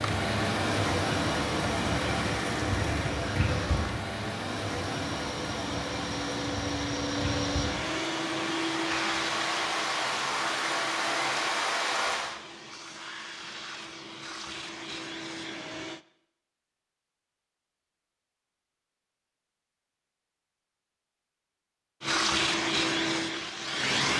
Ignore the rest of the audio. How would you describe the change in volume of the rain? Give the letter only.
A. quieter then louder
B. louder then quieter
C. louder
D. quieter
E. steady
A.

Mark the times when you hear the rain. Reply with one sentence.
You can hear the rain from 0.0 to 12.3 s.